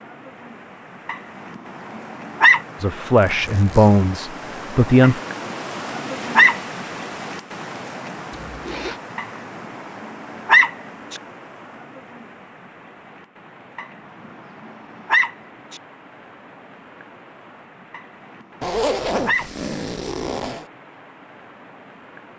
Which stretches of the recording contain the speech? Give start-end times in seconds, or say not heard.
2.8-5.2.